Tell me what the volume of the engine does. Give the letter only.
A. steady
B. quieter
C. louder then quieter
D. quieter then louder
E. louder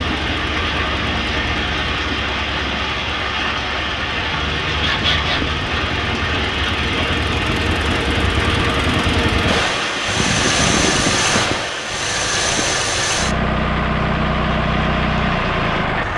E.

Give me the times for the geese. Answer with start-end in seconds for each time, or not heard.
4.3-5.7, 10.1-11.7.